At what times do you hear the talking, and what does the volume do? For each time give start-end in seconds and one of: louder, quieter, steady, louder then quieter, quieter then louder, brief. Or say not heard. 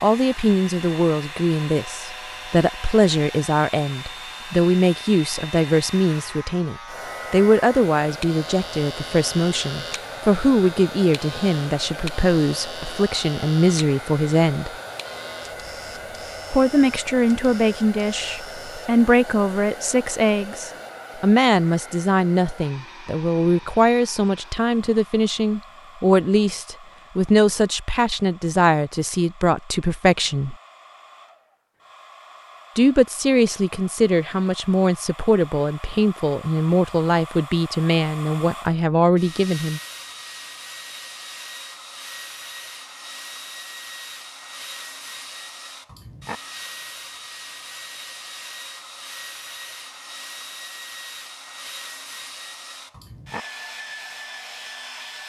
0.0-14.8 steady
16.5-30.6 steady
32.8-39.8 steady.